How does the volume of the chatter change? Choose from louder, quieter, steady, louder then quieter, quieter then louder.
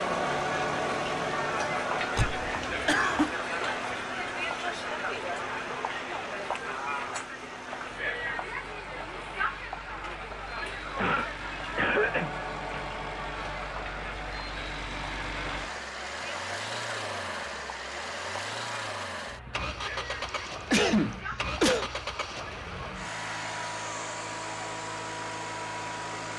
quieter.